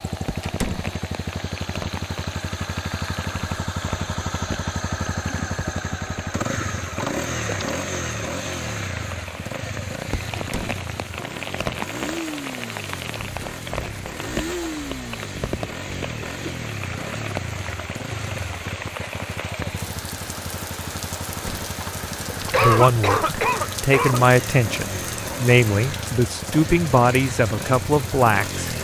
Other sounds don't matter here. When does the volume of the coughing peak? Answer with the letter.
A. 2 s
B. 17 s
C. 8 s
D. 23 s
D.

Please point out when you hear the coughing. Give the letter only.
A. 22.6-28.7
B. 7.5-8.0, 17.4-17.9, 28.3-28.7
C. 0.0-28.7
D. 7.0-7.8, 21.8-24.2
D.